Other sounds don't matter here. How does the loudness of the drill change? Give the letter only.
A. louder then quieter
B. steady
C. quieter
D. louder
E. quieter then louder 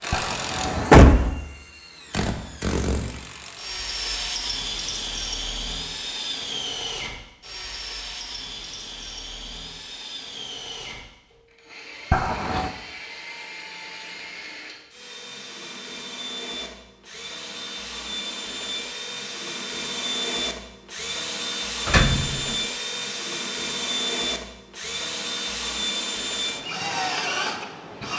E.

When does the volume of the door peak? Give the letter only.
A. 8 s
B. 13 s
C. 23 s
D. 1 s
D.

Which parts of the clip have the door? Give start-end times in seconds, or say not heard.
0.1-1.3, 12.1-12.7, 21.9-22.6.